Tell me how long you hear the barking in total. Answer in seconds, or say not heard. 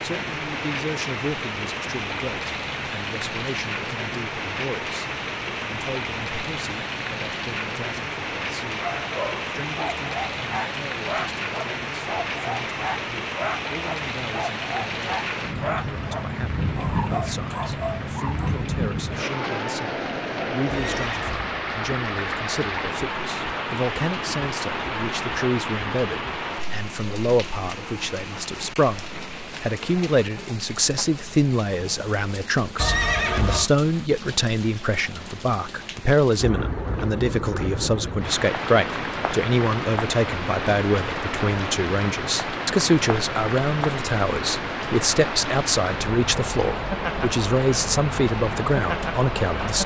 10 s.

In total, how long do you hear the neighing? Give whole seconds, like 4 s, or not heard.
2 s.